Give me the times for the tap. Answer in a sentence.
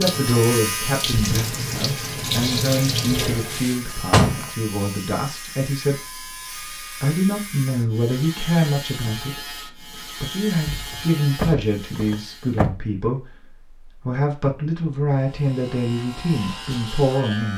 The tap can be heard from 0.0 to 3.7 s.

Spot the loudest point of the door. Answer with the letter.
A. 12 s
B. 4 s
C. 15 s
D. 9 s
B.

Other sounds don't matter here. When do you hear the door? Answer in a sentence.
The door can be heard from 3.5 to 4.5 s and from 10.7 to 12.8 s.